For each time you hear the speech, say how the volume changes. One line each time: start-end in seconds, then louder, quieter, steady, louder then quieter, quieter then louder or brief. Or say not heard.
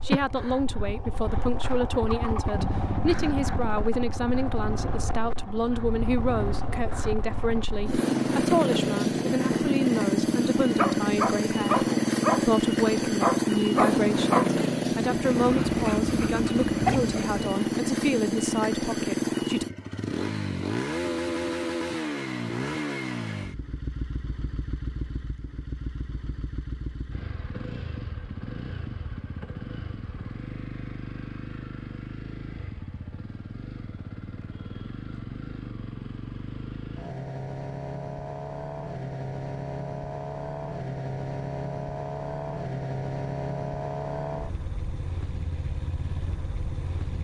0.0-19.6 steady.